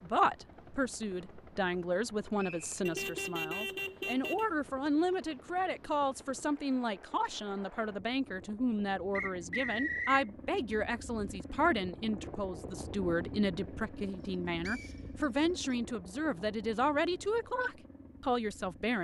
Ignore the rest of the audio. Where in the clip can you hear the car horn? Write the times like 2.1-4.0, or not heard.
2.9-4.5.